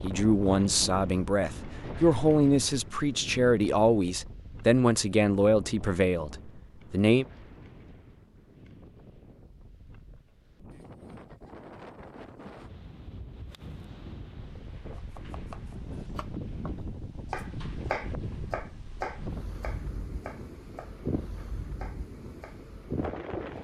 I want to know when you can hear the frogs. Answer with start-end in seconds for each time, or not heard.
not heard.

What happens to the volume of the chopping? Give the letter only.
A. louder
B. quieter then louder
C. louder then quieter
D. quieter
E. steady
C.